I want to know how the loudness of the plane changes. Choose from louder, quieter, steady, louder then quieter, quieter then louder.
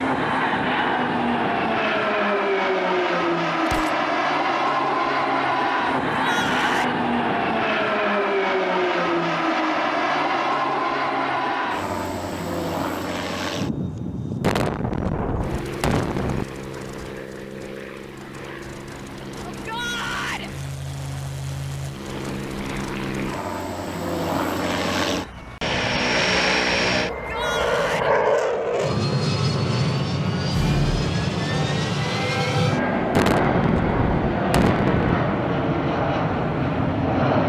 quieter then louder.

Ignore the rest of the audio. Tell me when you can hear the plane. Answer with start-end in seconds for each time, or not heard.
0.0-37.4.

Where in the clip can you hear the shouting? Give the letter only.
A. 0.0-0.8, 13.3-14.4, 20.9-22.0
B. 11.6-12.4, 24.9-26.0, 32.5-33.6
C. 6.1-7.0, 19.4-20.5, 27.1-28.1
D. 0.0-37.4
C.